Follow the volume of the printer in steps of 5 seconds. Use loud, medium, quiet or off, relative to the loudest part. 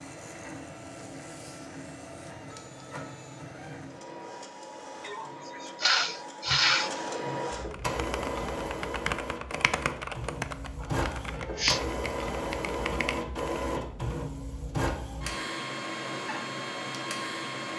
medium, loud, loud, loud.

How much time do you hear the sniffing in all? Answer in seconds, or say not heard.
3 s.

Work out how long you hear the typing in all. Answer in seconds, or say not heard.
6 s.